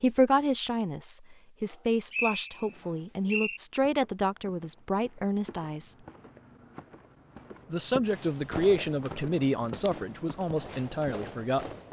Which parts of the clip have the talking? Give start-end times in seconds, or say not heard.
0.0-6.0, 7.7-11.7.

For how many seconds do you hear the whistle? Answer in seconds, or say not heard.
2 s.